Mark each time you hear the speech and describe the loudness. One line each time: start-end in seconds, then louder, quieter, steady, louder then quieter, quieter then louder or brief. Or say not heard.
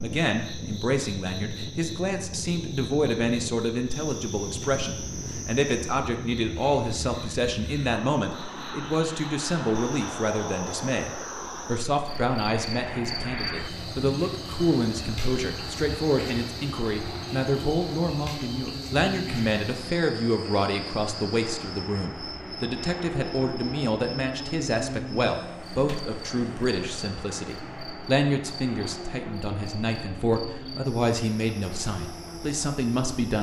0.0-33.3 steady.